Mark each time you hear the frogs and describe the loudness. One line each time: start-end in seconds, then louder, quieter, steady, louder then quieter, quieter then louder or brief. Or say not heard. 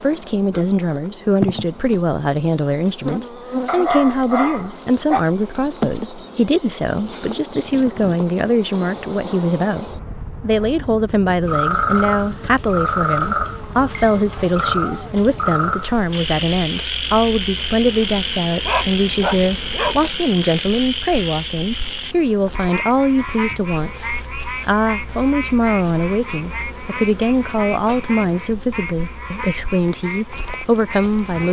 11.4-31.4 quieter.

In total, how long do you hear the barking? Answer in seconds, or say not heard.
3 s.